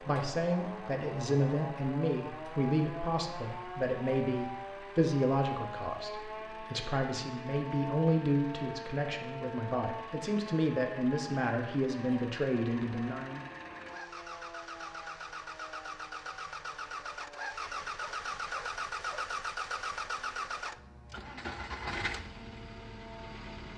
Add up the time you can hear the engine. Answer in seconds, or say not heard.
24 s.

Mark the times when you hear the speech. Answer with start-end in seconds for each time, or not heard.
0.0-13.4.